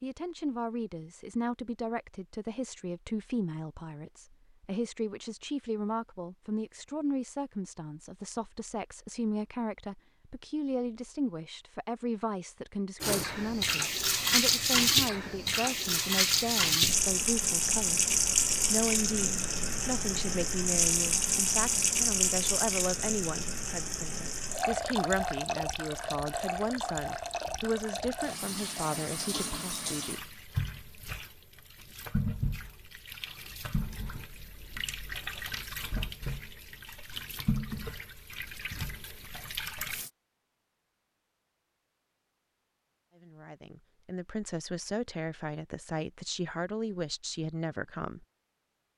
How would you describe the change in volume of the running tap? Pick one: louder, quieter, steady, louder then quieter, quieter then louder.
quieter.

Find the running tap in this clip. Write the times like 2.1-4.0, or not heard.
13.0-40.1.